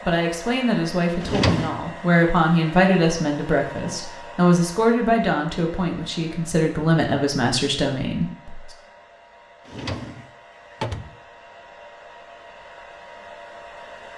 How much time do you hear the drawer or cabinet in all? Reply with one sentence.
The drawer or cabinet can be heard for 2 seconds in total.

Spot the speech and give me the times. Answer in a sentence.
The speech can be heard from 0.1 to 8.7 s.